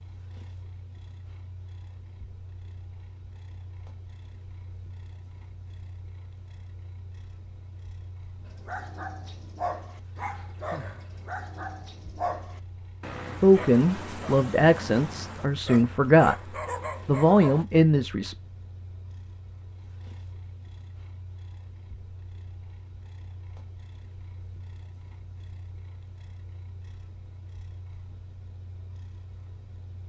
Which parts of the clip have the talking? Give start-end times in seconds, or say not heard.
13.4-16.4, 17.1-18.4.